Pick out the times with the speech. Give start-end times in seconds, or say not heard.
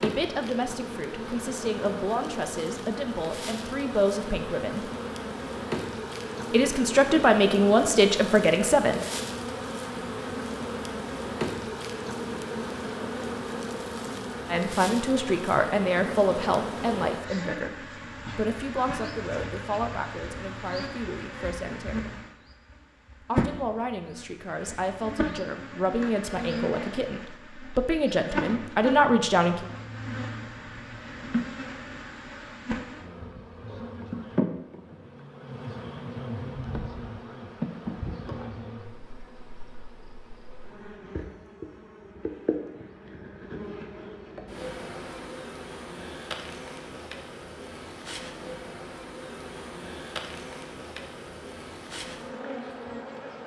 0.0-4.9, 6.5-9.0, 14.5-22.2, 23.2-29.6.